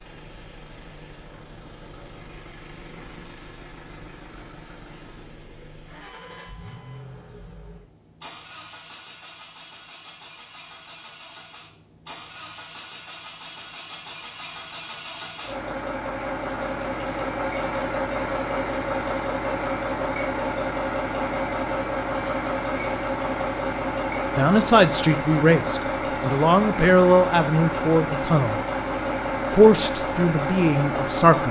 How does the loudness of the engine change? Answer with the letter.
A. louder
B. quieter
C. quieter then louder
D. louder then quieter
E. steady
A.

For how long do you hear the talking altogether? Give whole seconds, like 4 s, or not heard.
6 s.